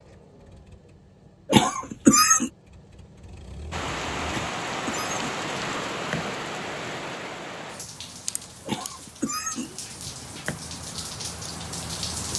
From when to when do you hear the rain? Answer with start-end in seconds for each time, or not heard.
3.7-12.3.